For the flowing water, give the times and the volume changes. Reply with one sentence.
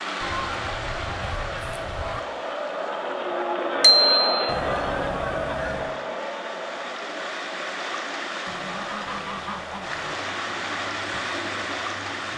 The flowing water can be heard from 0.0 to 12.3 s, getting quieter then louder.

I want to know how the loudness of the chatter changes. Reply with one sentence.
The loudness of the chatter goes up, then down.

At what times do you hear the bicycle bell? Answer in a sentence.
You can hear the bicycle bell from 3.8 to 4.5 s.